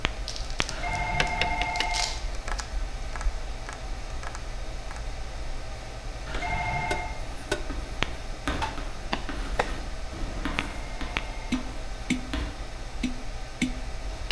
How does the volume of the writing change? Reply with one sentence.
The loudness of the writing goes down.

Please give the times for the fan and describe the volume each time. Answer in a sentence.
The fan can be heard from 0.0 to 14.2 s, at a steady volume.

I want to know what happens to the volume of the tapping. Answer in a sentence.
The volume of the tapping goes down, then up.